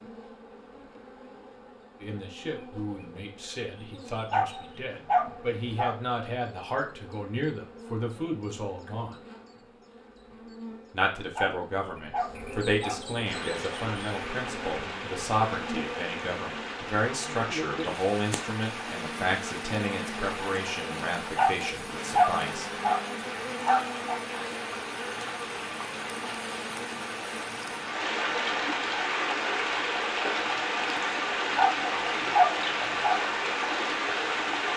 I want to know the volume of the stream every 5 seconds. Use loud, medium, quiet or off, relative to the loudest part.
off, off, medium, medium, medium, loud, loud.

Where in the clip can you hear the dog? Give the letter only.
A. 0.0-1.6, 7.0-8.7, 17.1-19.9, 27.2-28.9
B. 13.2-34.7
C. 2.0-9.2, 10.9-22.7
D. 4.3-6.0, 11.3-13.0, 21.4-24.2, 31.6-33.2
D.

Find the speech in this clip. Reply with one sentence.
The speech can be heard from 2.0 to 9.2 s and from 10.9 to 22.7 s.